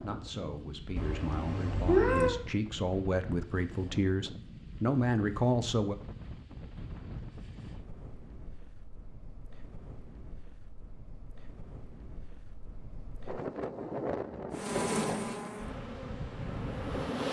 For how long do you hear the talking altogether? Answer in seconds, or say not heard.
6 s.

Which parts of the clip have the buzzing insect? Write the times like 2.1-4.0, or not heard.
14.5-17.2.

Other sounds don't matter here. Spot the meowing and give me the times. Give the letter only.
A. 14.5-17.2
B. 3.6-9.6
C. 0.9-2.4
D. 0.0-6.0
C.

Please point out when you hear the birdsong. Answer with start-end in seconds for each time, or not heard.
not heard.